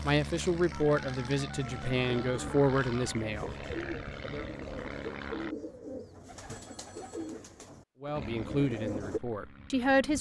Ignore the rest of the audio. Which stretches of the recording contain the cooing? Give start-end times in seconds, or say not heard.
1.6-9.2.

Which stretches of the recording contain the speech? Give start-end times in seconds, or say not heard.
0.0-4.5, 8.0-10.1.